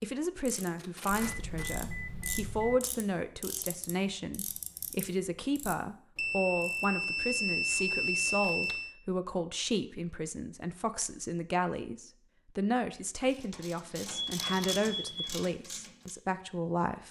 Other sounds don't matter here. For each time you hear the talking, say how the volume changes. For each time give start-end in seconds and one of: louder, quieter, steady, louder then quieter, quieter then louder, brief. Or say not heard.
0.0-17.0 steady.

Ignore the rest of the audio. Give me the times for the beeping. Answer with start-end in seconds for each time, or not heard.
1.1-2.8, 6.2-8.9, 14.1-15.4.